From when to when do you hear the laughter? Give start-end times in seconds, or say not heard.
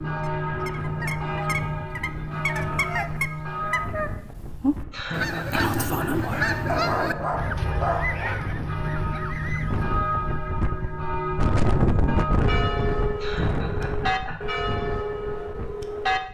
4.9-6.2, 13.2-14.5.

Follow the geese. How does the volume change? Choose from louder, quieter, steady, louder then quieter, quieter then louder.
louder then quieter.